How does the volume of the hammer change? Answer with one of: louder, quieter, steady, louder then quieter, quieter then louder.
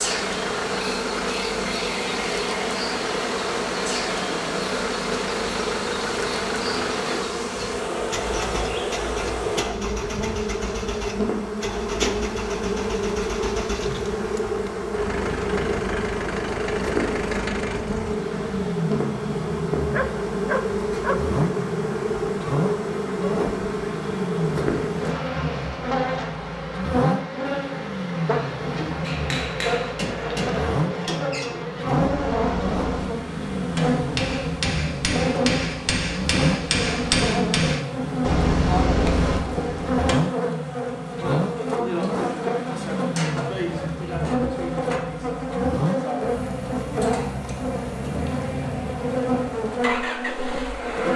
louder.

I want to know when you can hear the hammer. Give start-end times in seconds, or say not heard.
29.0-40.1.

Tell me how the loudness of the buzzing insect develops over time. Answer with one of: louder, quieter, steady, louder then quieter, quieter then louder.
steady.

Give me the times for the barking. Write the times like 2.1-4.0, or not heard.
19.9-21.2.